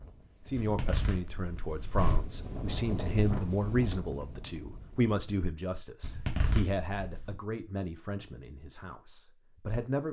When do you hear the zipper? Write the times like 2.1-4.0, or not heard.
0.6-2.4, 6.0-7.3.